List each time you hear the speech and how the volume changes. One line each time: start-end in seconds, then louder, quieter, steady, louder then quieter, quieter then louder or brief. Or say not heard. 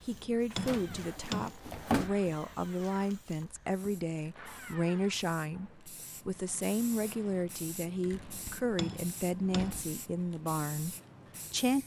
0.0-11.8 steady.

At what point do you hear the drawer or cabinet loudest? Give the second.
2 s.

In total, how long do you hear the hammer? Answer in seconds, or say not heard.
3 s.